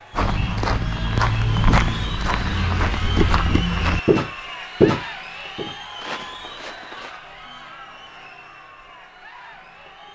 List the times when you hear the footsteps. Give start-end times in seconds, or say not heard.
0.1-7.2.